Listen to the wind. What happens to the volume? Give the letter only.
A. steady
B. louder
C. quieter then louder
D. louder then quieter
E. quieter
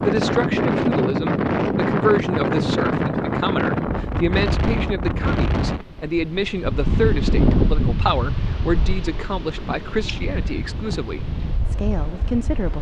E.